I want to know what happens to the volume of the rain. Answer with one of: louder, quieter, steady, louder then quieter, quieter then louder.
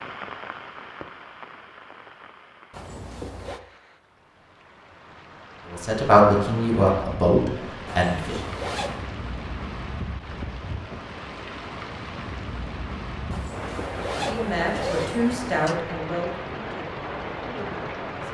louder.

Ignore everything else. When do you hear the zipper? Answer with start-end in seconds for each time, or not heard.
2.7-3.6, 7.8-9.1, 13.3-15.8.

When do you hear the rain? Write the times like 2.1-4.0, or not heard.
0.0-18.2.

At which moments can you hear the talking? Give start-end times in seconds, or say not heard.
5.7-8.4, 14.2-18.2.